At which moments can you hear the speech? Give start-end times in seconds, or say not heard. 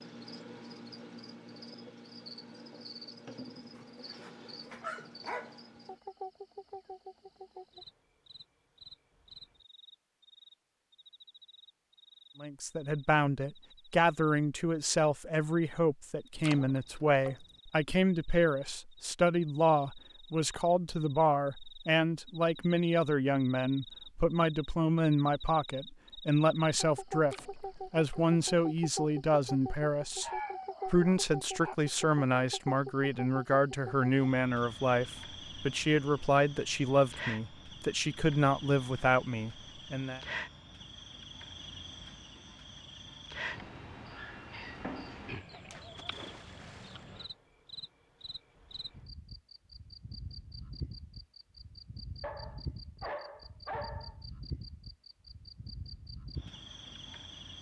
12.4-40.2.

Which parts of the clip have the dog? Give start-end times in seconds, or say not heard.
3.8-5.5, 29.8-31.8, 52.2-54.1.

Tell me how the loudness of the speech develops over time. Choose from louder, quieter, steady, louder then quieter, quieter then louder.
steady.